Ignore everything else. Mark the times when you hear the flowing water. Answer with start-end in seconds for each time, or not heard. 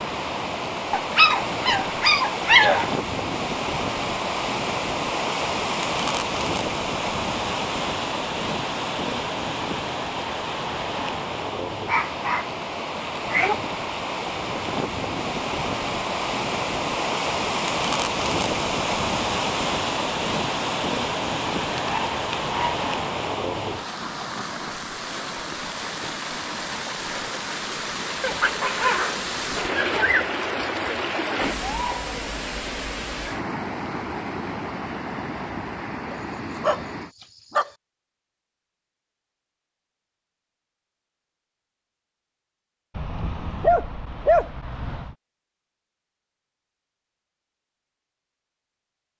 0.0-37.1.